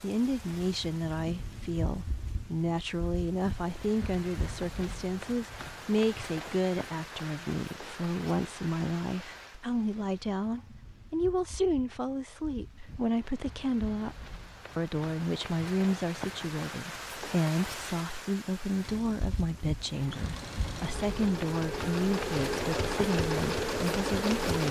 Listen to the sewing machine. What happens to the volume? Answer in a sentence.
The volume of the sewing machine goes up.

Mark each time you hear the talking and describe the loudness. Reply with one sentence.
You can hear the talking from 0.0 to 24.6 s, at a steady volume.